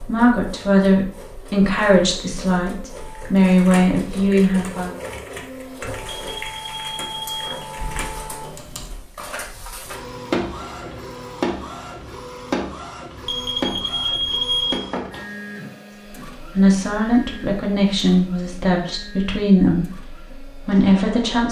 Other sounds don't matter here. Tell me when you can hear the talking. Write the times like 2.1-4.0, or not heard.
0.0-5.0, 16.5-21.4.